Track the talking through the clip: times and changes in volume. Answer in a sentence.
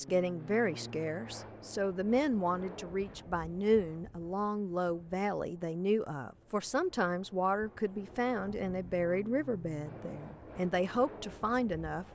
The talking can be heard from 0.0 to 12.1 s, at a steady volume.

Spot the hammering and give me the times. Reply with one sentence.
You can't hear the hammering here.